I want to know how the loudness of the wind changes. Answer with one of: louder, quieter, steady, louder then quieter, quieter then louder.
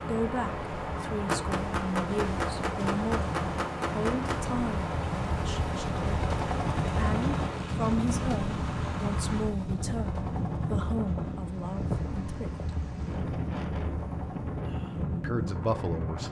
steady.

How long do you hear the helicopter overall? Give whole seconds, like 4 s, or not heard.
16 s.